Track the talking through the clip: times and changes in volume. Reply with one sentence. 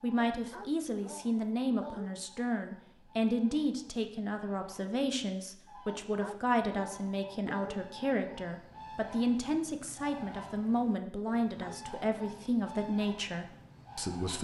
You can hear the talking from 0.0 to 14.3 s, at a steady volume.